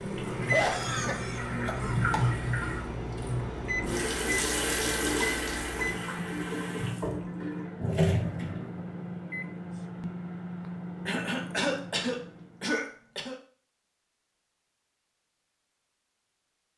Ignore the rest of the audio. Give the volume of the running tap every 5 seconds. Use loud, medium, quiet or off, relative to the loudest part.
loud, loud, off, off.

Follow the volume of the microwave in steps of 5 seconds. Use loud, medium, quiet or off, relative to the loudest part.
loud, loud, loud, off.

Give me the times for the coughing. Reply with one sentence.
The coughing can be heard from 0.5 to 2.4 s and from 11.1 to 13.3 s.